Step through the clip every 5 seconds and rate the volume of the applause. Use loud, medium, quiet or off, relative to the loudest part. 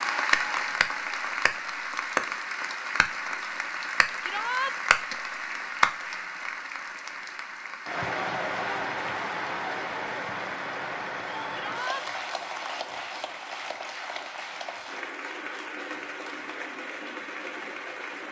loud, loud, medium, medium.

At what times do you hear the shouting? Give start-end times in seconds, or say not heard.
4.2-4.8, 11.5-12.1.